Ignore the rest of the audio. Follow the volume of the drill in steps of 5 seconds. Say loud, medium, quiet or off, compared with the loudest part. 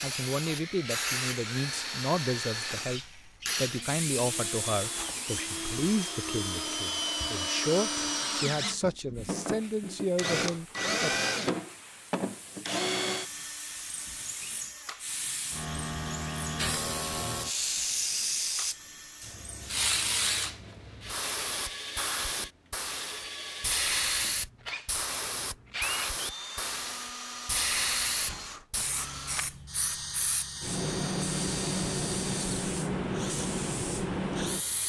medium, loud, loud, quiet, medium, medium, medium.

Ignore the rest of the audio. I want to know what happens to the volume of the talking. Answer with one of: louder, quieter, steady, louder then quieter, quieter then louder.
steady.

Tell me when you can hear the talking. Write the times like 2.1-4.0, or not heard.
0.0-11.2.